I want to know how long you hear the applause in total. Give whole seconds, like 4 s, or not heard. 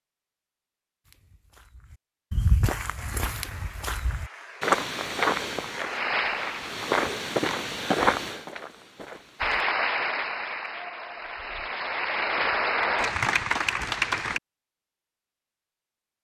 9 s.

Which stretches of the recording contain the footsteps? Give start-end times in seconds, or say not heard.
1.1-9.7.